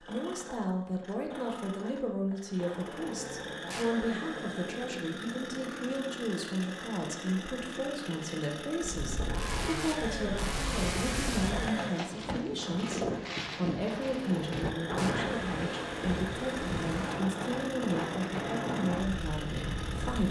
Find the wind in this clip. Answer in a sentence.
The wind can be heard from 8.9 to 20.2 s.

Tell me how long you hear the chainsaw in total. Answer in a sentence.
You can hear the chainsaw for 20 seconds altogether.